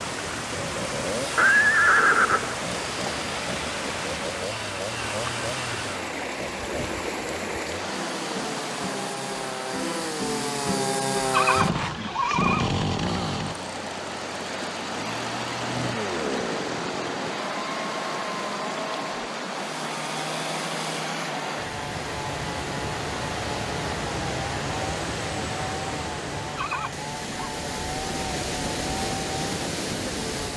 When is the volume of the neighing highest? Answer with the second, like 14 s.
2 s.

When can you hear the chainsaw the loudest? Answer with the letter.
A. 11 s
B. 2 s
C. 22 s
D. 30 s
A.